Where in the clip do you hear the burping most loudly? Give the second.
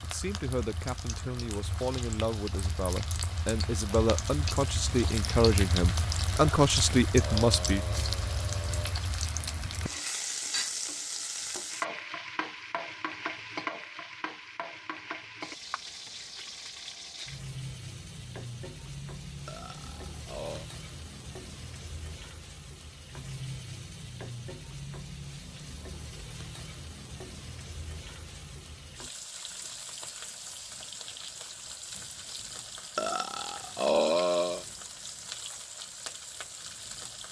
34 s.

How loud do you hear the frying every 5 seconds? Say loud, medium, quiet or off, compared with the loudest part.
medium, loud, loud, medium, medium, medium, medium, medium.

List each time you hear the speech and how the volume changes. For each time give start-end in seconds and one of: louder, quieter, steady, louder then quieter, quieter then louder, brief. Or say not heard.
0.0-7.8 louder.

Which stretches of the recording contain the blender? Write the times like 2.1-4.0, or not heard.
not heard.